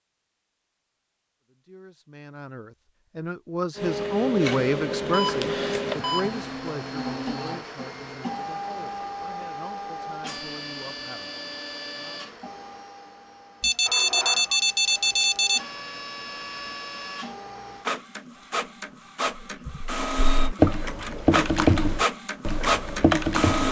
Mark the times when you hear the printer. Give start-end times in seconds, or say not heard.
3.8-23.6.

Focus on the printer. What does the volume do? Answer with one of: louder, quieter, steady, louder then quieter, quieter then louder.
quieter then louder.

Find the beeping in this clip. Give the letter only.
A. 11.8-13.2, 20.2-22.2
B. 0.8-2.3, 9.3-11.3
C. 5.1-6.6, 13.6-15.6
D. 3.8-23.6
C.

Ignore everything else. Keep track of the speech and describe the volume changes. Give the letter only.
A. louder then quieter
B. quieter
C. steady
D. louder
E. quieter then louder
A.